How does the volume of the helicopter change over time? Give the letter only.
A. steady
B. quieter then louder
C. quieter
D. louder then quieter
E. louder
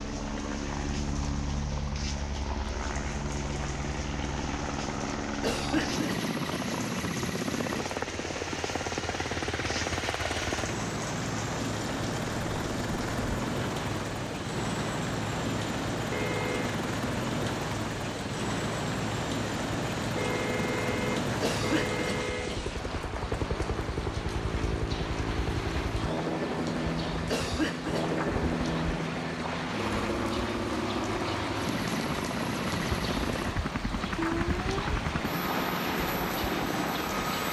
A.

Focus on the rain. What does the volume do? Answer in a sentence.
The volume of the rain goes up.